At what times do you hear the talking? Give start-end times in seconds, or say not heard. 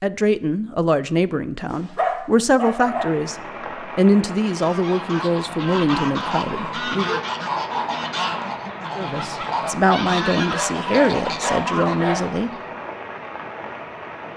0.0-7.2, 8.9-12.5.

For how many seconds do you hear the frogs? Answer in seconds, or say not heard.
not heard.